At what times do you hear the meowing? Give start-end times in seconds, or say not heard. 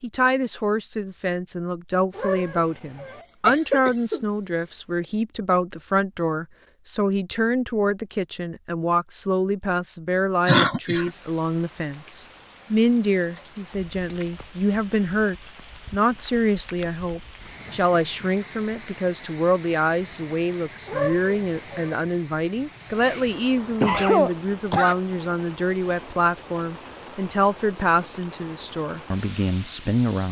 2.1-3.2, 20.9-21.9.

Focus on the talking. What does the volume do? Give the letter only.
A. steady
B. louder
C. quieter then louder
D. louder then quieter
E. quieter
A.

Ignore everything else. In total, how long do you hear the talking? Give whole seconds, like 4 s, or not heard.
30 s.